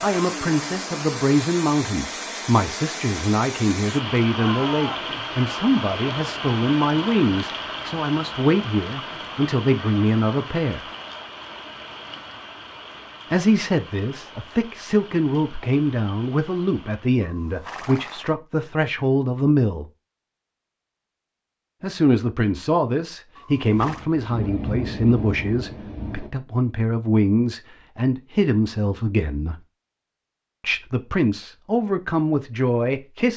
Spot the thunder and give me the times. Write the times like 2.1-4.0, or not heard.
23.8-26.3.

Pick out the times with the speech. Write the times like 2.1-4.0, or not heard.
0.0-10.9, 13.3-19.9, 21.8-29.6, 30.6-33.3.